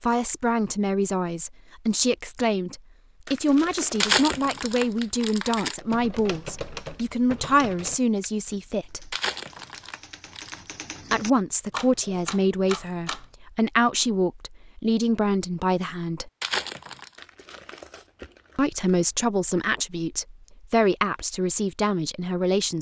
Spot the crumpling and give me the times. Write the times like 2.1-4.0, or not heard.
4.0-5.8, 9.1-10.6, 16.4-17.1.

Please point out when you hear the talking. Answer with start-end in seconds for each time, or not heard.
0.0-9.2, 11.1-16.3, 18.6-22.7.